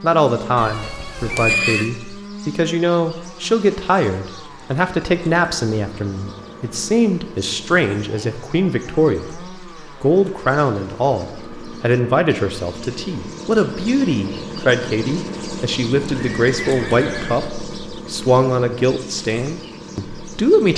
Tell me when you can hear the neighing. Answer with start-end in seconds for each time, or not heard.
1.3-1.9, 16.1-17.5.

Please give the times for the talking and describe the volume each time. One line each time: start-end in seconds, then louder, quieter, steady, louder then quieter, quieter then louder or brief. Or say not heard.
0.0-20.7 steady.